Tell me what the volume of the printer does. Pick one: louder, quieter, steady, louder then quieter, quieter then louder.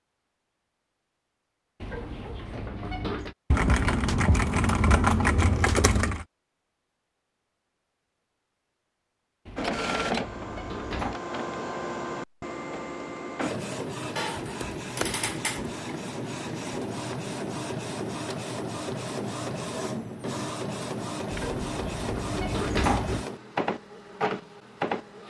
steady.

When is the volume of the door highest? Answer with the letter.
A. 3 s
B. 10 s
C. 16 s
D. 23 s
D.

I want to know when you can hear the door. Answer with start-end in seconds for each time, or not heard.
1.8-3.4, 9.4-11.2, 21.3-23.2.